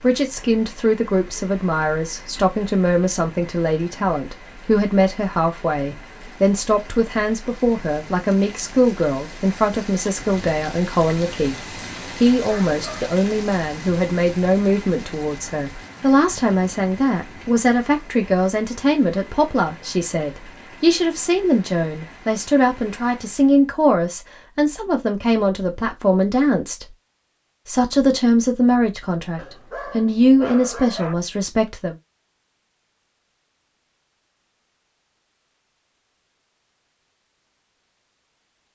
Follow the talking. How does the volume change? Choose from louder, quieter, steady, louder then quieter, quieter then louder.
steady.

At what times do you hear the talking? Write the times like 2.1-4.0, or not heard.
0.0-26.9, 27.6-31.9.